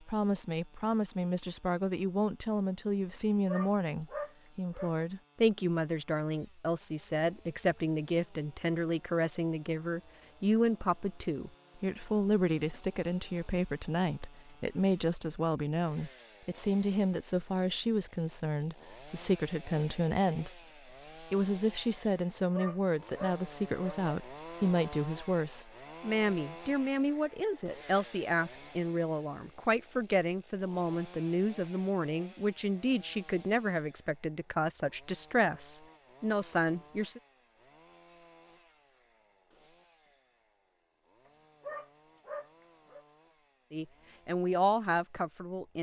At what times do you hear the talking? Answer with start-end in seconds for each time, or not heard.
0.1-20.6, 21.2-37.2, 43.7-45.7.